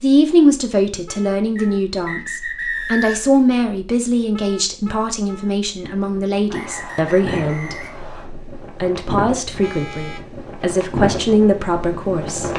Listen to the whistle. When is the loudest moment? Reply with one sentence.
The volume of the whistle peaks at 3 seconds.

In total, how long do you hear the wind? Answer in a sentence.
You can hear the wind for 7 seconds altogether.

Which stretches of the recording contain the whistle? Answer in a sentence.
You can hear the whistle from 1.6 to 3.4 s and from 6.5 to 8.3 s.